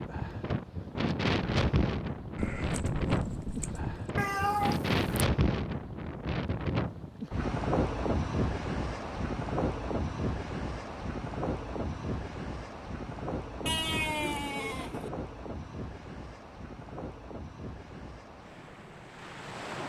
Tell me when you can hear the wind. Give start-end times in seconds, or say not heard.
0.0-19.8.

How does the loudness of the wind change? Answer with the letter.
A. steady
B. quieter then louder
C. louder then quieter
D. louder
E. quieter
E.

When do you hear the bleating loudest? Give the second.
14 s.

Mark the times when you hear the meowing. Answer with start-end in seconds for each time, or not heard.
4.2-5.2.